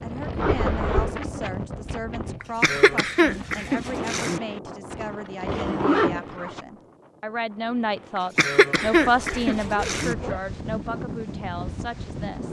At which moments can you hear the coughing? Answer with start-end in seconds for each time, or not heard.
2.4-4.4, 8.2-10.2.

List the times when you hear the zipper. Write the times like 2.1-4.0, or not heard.
0.3-1.2, 4.9-6.7, 8.7-10.4.